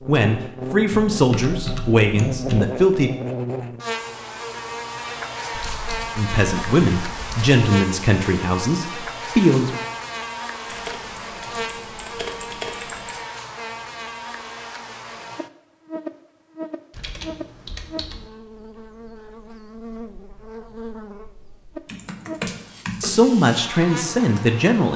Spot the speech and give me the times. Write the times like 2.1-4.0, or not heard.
0.1-3.1, 6.2-9.8, 23.0-24.9.